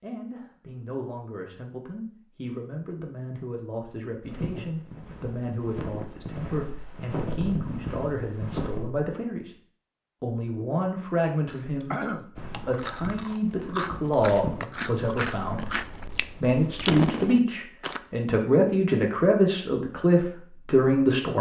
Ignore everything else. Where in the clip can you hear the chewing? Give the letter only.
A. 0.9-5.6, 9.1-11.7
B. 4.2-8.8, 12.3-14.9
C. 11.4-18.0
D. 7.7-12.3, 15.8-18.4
C.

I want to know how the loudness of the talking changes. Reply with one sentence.
The loudness of the talking goes up.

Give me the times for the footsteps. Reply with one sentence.
The footsteps can be heard from 4.2 to 8.8 s and from 12.3 to 14.9 s.